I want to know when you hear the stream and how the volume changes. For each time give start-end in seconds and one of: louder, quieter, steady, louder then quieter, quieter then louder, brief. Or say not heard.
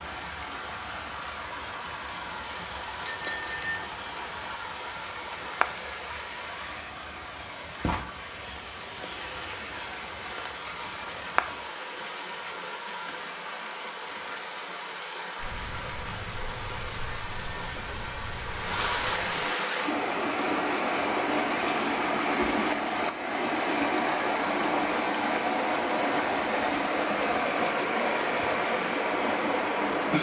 0.0-30.1 louder.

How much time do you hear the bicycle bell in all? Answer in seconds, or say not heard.
3 s.